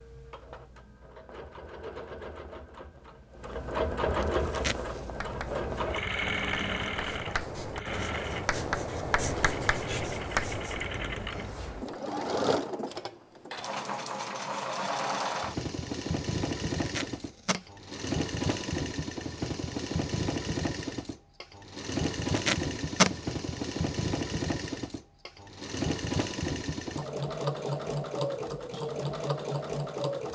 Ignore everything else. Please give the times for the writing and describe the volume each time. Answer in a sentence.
The writing can be heard from 4.5 to 11.9 s, getting louder.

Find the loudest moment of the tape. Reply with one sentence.
The loudest moment of the tape is at 23 seconds.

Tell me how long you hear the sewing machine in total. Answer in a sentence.
You can hear the sewing machine for 30 seconds altogether.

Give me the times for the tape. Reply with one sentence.
The tape can be heard from 4.2 to 5.0 s, from 16.8 to 17.6 s and from 22.1 to 23.1 s.